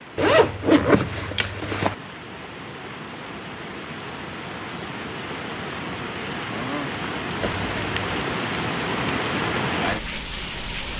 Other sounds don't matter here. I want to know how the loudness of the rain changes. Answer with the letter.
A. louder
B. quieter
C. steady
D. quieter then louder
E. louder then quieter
A.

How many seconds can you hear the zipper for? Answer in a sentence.
You can hear the zipper for 3 seconds altogether.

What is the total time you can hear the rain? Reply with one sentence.
You can hear the rain for 11 seconds altogether.